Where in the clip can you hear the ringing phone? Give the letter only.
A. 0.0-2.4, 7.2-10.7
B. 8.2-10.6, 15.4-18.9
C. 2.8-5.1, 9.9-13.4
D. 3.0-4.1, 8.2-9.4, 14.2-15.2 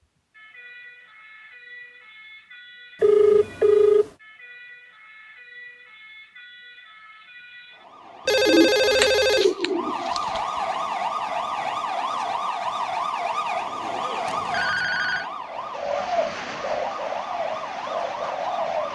D.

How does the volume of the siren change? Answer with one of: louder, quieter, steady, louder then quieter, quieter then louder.
louder then quieter.